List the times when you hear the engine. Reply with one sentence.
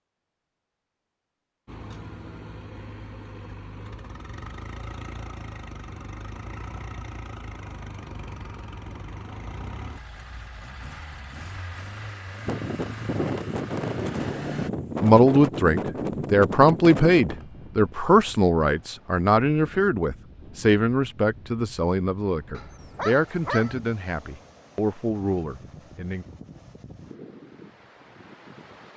The engine can be heard from 1.6 to 14.7 s.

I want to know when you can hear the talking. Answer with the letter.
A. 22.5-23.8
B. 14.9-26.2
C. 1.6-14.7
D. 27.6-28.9
B.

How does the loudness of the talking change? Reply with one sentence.
The loudness of the talking goes down.